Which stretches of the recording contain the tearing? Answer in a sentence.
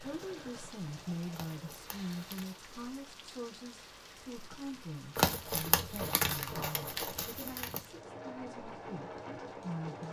You can hear the tearing from 1.3 to 2.6 s and from 5.2 to 7.8 s.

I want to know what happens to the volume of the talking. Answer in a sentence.
The volume of the talking goes down.